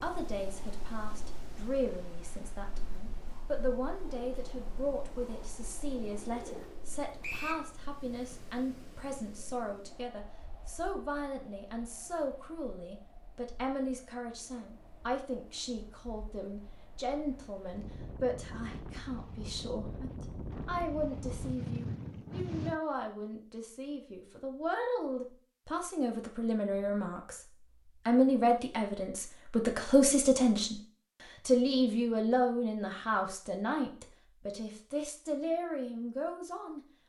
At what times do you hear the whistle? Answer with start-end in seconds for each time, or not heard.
7.2-7.7.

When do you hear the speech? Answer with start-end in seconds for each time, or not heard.
0.0-27.4, 28.1-30.8, 31.4-36.8.